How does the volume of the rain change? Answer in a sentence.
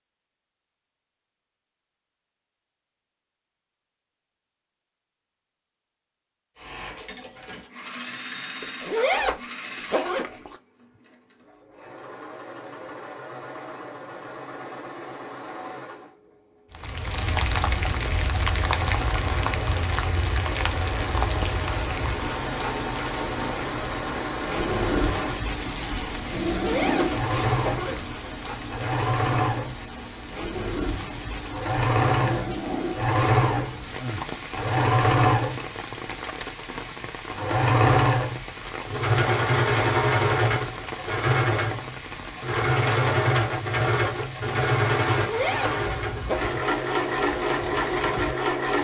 The loudness of the rain goes down.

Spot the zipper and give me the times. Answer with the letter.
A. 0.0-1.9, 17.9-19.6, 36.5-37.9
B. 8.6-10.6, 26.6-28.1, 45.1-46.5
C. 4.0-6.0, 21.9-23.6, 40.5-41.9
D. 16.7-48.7
B.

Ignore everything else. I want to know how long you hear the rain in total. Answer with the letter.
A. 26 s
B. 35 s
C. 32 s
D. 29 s
C.